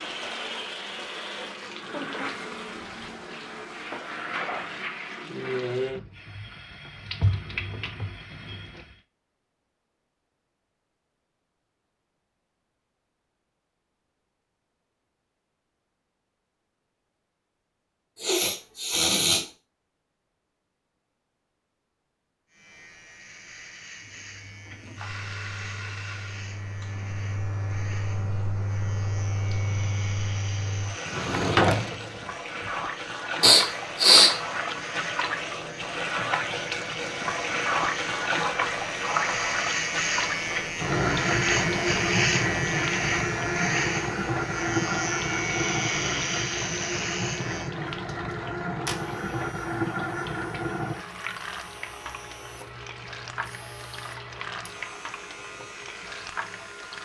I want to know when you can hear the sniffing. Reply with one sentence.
The sniffing can be heard from 18.1 to 19.4 s and from 33.4 to 34.3 s.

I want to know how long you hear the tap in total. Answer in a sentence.
The tap can be heard for 42 seconds in total.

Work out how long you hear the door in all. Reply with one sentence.
The door can be heard for 2 seconds in total.